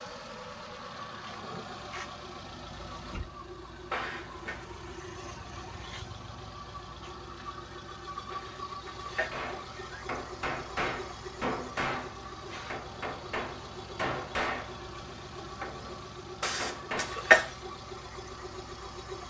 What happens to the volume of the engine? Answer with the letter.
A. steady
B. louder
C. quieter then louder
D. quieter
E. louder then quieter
A.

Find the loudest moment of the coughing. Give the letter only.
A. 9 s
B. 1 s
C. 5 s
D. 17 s
D.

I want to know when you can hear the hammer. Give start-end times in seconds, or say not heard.
9.3-14.8, 15.6-17.1.